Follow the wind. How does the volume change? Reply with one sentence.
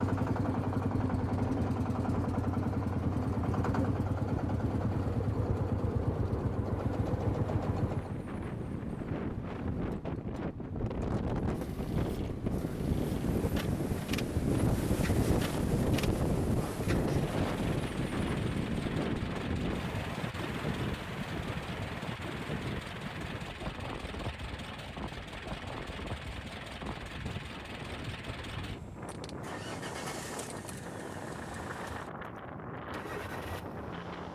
The loudness of the wind goes up, then down.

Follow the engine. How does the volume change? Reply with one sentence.
The volume of the engine goes down.